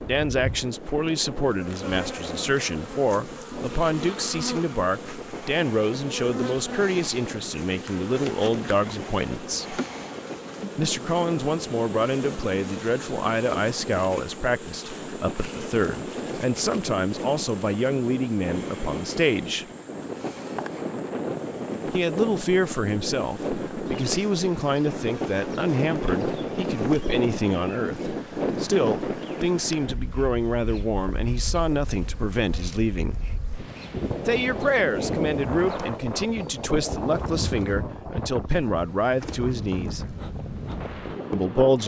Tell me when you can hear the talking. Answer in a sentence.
You can hear the talking from 0.1 to 9.8 s, from 10.8 to 19.6 s, from 21.9 to 33.2 s, from 34.2 to 40.0 s and from 41.3 to 41.8 s.